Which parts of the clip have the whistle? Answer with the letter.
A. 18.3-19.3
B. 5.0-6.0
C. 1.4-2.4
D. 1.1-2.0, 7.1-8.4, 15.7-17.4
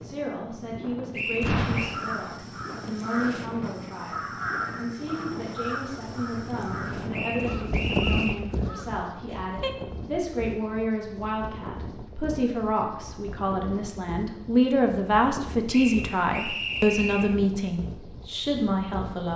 D.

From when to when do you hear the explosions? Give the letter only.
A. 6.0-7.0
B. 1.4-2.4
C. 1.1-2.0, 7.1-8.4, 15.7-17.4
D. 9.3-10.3
B.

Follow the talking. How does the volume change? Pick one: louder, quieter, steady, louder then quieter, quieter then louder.
louder.